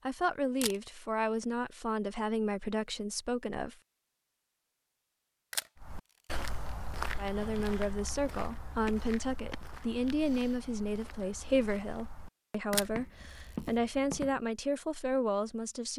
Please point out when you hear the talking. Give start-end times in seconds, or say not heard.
0.1-3.8, 7.2-15.9.